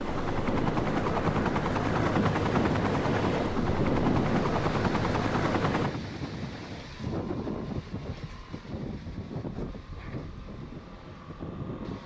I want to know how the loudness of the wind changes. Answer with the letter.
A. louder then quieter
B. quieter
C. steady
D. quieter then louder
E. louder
B.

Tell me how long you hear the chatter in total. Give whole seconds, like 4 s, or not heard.
not heard.